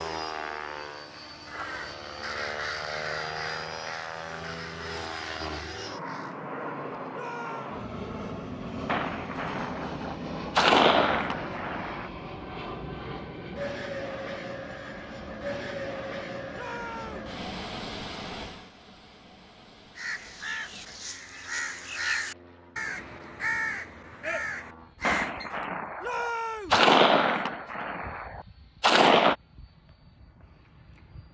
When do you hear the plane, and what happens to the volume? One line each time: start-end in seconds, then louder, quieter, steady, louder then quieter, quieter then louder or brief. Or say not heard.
0.0-31.2 quieter.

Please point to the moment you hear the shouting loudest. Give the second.
26 s.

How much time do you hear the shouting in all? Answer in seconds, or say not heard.
2 s.